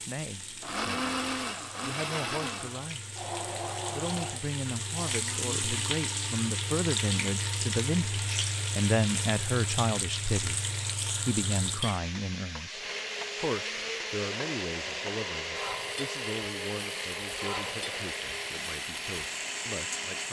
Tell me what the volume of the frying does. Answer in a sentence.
The loudness of the frying goes up, then down.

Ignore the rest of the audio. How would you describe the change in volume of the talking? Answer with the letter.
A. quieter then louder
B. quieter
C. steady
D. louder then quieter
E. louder
D.